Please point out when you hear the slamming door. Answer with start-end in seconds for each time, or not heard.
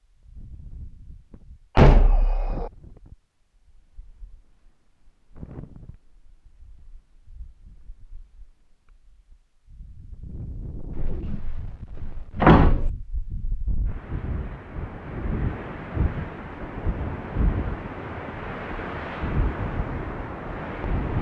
1.8-2.7, 10.9-12.9.